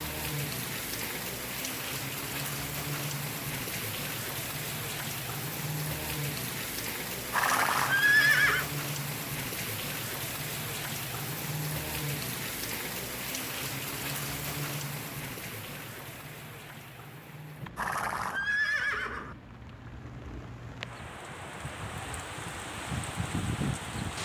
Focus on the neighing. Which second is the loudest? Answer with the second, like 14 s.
8 s.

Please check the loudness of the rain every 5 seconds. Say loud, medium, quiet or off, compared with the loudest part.
loud, loud, loud, medium, loud.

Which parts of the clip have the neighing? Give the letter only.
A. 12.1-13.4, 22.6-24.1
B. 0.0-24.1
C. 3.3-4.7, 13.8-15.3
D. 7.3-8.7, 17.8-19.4
D.